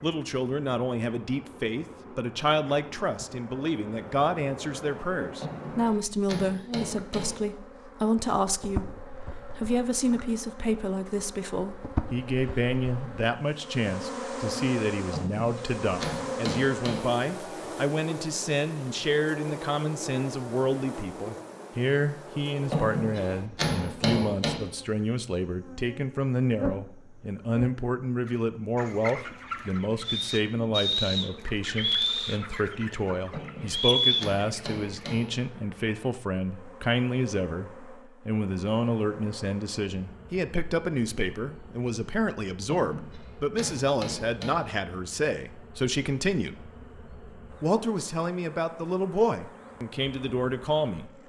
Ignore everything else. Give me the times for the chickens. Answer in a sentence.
You can hear the chickens from 28.2 to 35.1 s.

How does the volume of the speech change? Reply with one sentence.
The loudness of the speech stays about the same.